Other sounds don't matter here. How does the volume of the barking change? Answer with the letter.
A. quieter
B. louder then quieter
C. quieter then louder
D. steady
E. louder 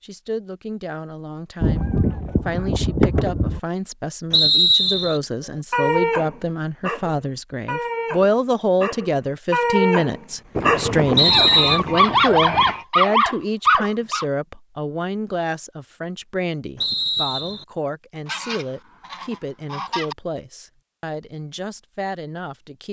E.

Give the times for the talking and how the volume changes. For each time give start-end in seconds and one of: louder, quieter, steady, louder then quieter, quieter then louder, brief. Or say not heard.
0.0-22.8 louder then quieter.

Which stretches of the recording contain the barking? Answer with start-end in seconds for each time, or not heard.
5.7-14.2.